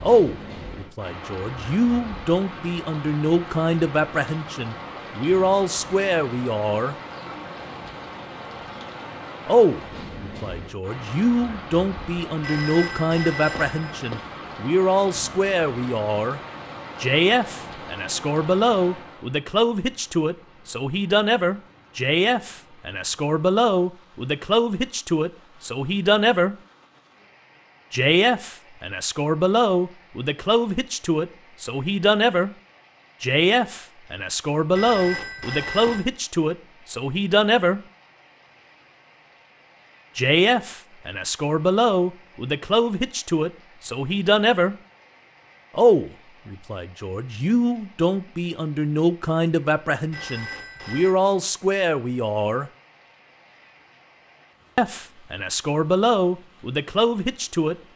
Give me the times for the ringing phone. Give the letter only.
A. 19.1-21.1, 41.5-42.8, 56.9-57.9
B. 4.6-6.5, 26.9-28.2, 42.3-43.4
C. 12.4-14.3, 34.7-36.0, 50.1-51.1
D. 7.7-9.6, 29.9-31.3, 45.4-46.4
C.